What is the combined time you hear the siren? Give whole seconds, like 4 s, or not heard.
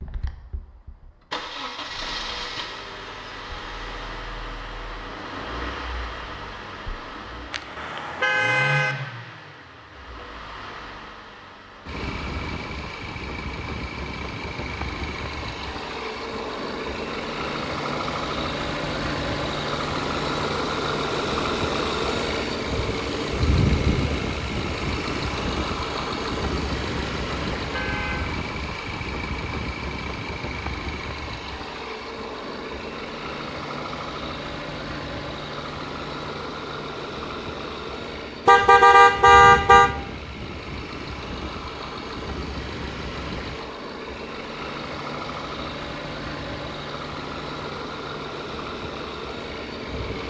not heard.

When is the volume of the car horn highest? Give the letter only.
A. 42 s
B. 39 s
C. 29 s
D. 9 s
B.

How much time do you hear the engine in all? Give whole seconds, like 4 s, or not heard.
50 s.